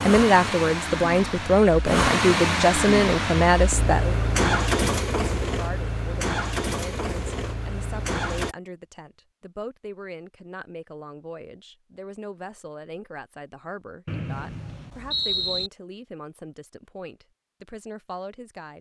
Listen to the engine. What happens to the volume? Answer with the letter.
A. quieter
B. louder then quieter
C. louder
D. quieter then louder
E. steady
B.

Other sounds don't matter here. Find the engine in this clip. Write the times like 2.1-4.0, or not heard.
0.0-8.6.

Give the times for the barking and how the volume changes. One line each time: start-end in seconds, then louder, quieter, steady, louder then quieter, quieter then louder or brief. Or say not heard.
not heard.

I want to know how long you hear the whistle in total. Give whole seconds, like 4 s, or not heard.
2 s.